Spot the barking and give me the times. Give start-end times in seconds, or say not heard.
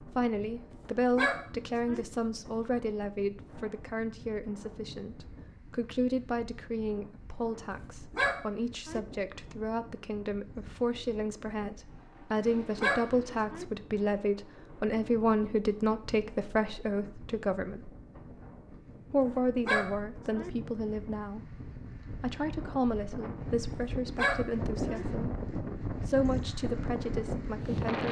1.1-2.0, 8.1-9.0, 12.8-13.7, 19.6-20.5, 24.1-25.1.